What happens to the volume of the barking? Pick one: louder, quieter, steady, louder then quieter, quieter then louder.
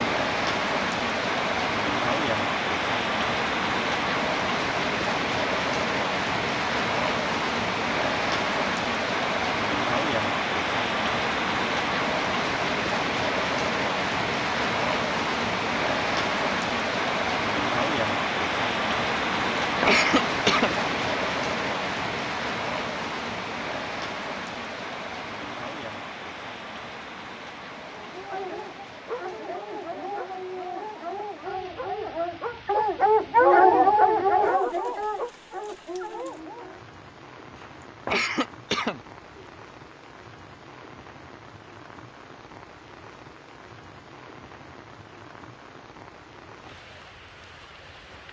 louder then quieter.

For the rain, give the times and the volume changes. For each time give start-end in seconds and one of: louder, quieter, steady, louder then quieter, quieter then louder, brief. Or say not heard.
0.0-48.2 quieter.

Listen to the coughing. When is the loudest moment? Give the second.
20 s.